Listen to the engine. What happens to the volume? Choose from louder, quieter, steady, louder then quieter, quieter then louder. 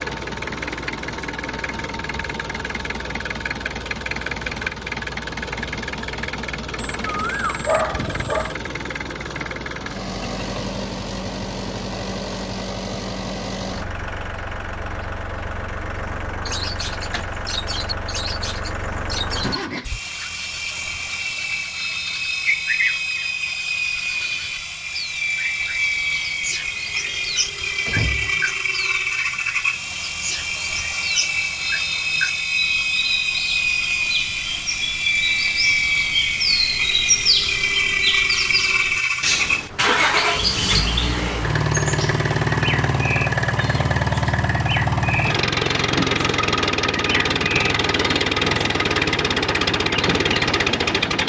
louder.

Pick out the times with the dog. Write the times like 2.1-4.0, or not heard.
7.0-8.6.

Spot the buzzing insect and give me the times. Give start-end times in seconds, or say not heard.
not heard.